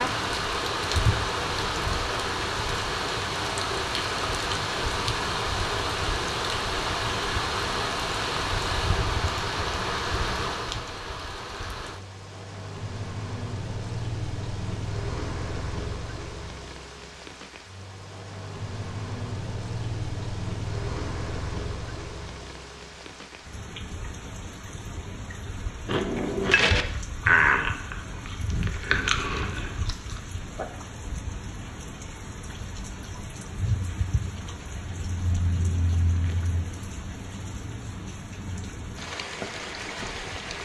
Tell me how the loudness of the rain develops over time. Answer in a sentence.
The loudness of the rain goes down.